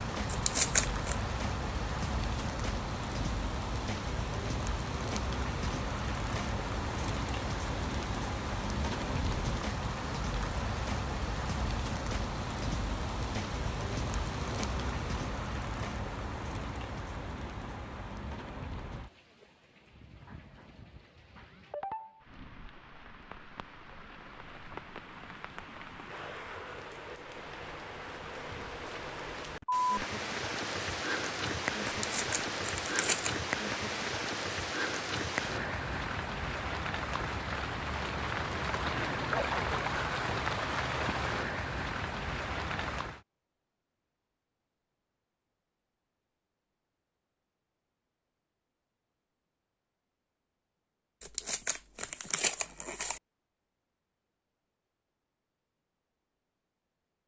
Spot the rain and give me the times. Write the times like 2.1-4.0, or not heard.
0.0-43.2.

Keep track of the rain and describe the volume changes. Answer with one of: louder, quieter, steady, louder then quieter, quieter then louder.
quieter then louder.